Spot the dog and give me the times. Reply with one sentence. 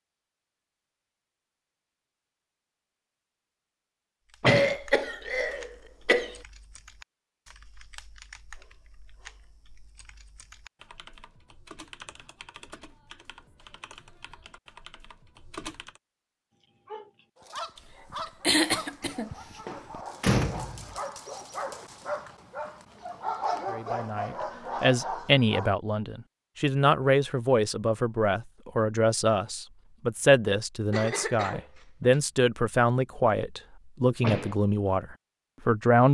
You can hear the dog from 16.9 to 25.7 s.